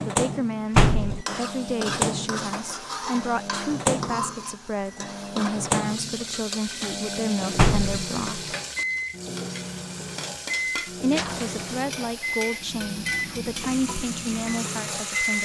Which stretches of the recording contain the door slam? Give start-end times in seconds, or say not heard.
0.8-1.2, 7.5-8.1, 11.1-12.6.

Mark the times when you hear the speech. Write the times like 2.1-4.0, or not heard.
0.0-8.6, 11.0-15.3.